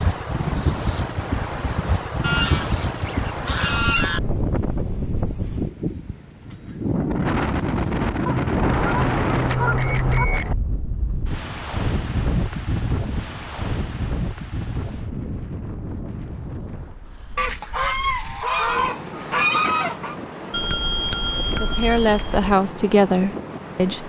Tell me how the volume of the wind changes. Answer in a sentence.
The volume of the wind goes down.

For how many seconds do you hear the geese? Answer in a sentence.
You can hear the geese for 7 seconds altogether.